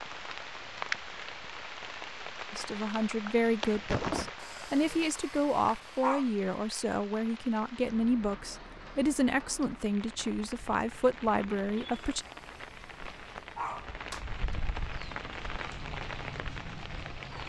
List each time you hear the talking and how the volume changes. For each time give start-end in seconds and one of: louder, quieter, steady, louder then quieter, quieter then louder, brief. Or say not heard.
2.5-12.2 steady.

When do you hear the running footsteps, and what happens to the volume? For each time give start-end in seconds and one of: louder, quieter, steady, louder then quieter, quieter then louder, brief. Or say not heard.
not heard.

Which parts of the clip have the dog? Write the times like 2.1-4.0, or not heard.
4.3-6.2, 11.9-14.2.